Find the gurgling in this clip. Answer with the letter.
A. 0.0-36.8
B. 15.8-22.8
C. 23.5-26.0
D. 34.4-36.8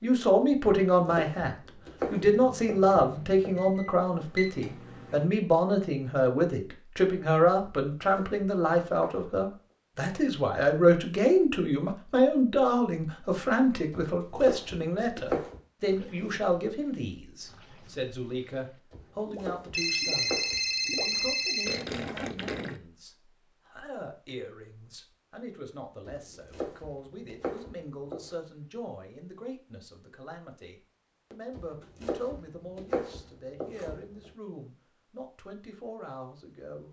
B.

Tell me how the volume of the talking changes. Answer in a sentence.
The volume of the talking goes down.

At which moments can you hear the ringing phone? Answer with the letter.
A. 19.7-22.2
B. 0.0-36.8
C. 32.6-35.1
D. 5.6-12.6
A.